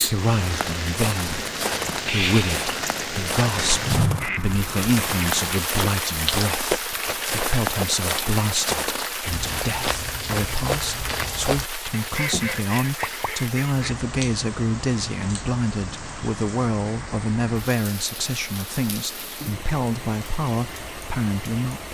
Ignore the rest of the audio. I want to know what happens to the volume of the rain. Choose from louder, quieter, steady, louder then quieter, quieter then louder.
quieter.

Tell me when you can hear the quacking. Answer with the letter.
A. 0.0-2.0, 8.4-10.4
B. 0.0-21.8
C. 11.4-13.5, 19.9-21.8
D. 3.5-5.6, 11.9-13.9
D.